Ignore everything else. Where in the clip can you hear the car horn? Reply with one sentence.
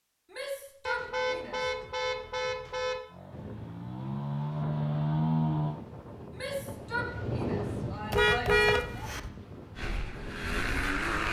You can hear the car horn from 0.8 to 3.0 s and from 8.1 to 9.3 s.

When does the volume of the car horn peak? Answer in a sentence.
The volume of the car horn peaks at 9 seconds.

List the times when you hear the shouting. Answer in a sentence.
You can hear the shouting from 0.3 to 1.6 s and from 6.3 to 9.1 s.